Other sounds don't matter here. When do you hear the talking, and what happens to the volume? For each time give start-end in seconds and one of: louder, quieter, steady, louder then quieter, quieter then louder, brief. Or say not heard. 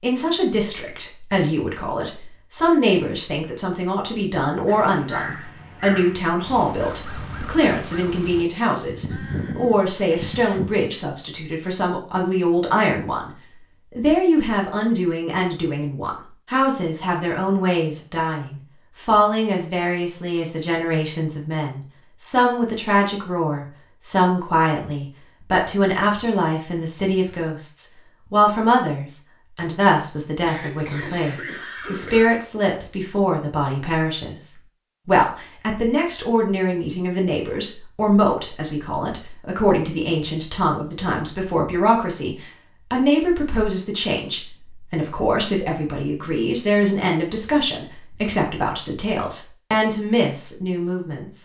0.0-51.3 steady.